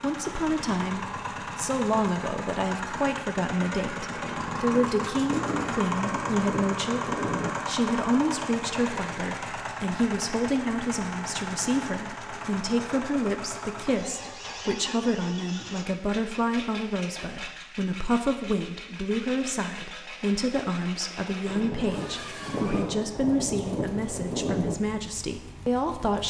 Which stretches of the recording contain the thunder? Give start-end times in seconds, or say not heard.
4.2-7.5, 21.4-24.8.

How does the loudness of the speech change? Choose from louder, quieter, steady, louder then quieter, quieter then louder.
steady.